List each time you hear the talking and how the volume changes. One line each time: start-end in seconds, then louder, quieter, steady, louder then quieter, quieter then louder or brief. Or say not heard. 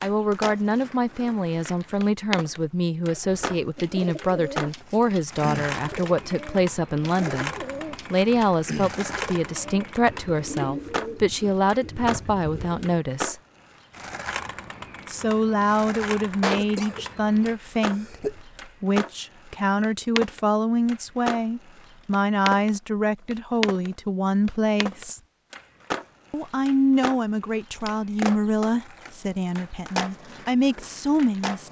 0.0-13.3 steady
15.1-25.2 steady
26.3-31.6 quieter then louder.